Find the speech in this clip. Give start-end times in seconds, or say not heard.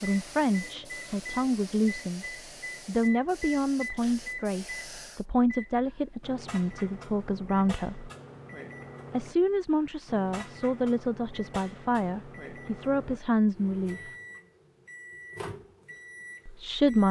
0.0-2.2, 2.9-8.1, 9.1-14.1, 16.4-17.0.